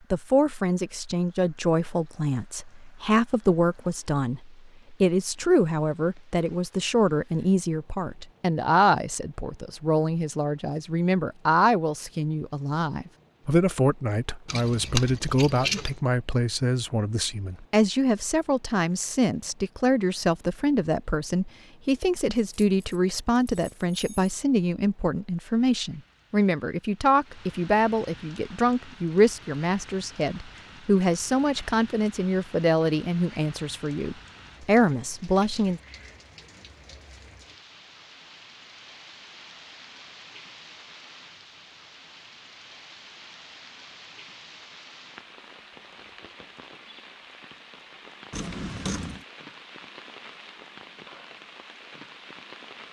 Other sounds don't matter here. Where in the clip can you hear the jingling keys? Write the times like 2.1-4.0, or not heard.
14.4-15.9, 22.6-24.4, 48.3-49.2.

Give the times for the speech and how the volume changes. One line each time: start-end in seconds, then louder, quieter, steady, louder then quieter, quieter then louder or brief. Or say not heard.
0.1-35.8 steady.